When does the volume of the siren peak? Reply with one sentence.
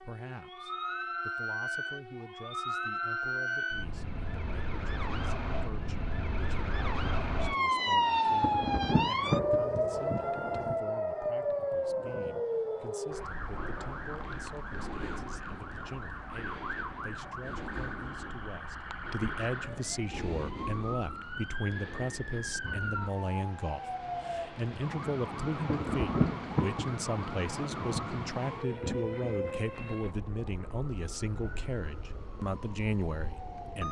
The volume of the siren peaks at 8 seconds.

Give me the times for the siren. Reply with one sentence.
You can hear the siren from 0.0 to 33.8 s.